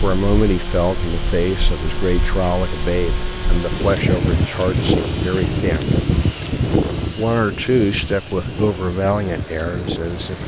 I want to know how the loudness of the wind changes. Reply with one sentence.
The volume of the wind goes up, then down.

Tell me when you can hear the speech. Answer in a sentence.
You can hear the speech from 0.0 to 5.9 s and from 7.2 to 10.4 s.